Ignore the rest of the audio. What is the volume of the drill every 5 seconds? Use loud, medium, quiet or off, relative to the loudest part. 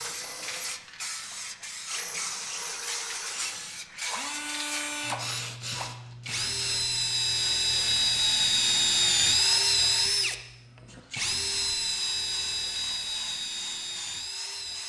quiet, loud, medium.